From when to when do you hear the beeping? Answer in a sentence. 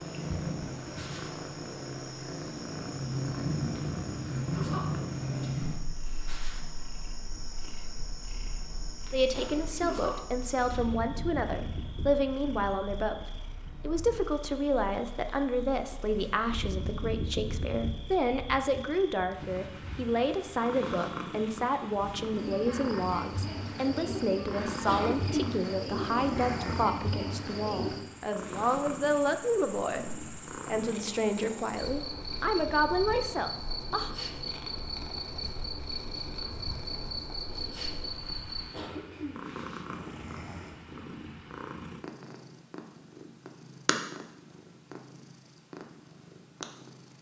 You can't hear the beeping here.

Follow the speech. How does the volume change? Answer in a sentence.
The volume of the speech stays about the same.